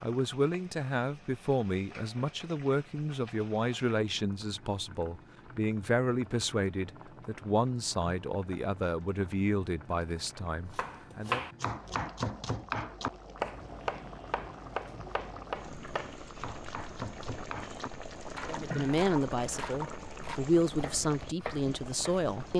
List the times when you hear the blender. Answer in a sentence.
The blender can't be heard in this clip.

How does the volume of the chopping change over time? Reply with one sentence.
The loudness of the chopping goes down.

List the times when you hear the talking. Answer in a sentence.
You can hear the talking from 0.0 to 11.4 s and from 18.4 to 22.5 s.